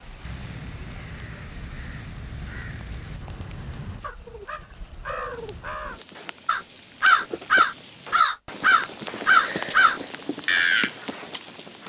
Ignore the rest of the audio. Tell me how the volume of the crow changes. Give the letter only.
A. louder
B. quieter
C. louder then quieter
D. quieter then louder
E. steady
A.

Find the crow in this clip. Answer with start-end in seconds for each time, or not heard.
0.2-10.9.